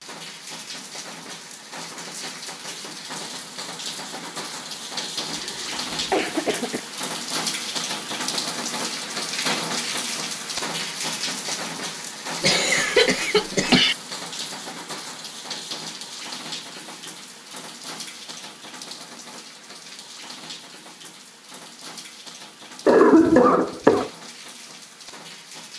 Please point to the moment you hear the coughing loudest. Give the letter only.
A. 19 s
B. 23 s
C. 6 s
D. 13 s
B.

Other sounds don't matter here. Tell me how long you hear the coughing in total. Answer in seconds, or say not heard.
4 s.